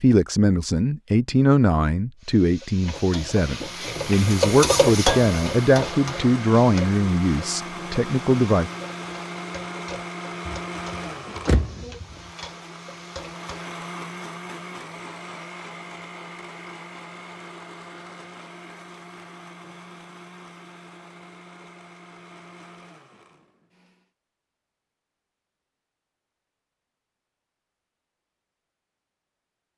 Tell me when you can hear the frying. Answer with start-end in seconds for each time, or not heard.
2.2-13.7.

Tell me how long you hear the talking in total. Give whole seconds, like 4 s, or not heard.
9 s.